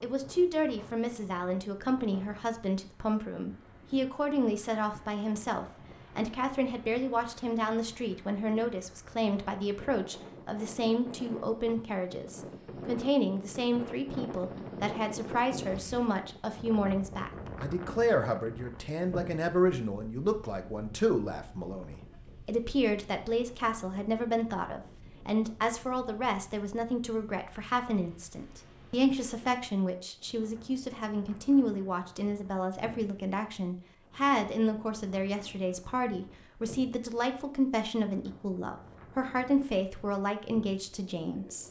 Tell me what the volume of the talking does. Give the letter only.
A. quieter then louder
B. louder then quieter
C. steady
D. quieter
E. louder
C.